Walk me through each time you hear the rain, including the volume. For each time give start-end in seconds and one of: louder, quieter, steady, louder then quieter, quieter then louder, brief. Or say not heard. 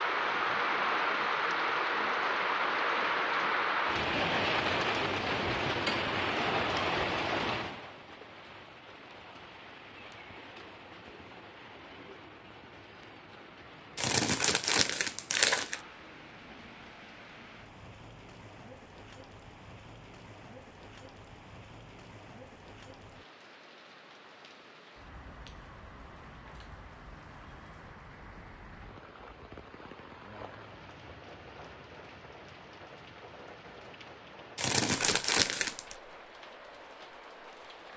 0.0-37.9 quieter.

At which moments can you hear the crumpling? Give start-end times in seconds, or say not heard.
13.9-15.8, 34.5-36.0.